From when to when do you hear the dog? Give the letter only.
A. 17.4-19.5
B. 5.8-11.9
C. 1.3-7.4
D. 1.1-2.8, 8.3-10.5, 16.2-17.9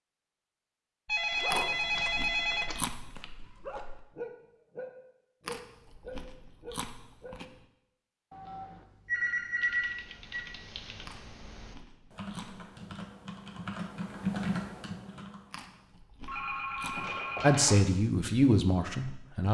C.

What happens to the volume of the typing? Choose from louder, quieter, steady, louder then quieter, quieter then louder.
louder.